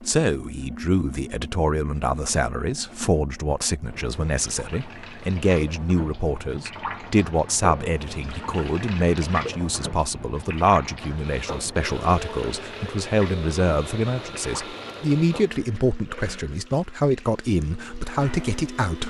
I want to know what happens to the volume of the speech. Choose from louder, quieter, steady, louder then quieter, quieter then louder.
steady.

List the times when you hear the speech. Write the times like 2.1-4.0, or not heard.
0.0-19.0.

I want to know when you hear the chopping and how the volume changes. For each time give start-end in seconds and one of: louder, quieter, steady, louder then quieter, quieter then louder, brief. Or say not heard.
not heard.